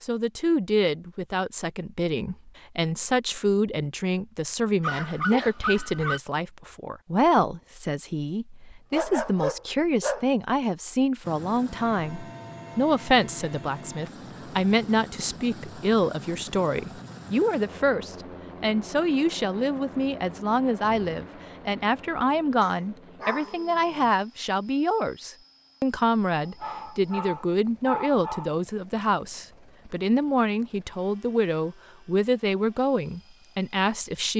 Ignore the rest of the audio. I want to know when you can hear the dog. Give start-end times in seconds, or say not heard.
4.8-6.2, 8.7-10.3, 22.6-24.1, 26.4-28.5.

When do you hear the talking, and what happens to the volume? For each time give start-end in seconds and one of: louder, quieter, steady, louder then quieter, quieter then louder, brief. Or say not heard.
0.0-34.3 steady.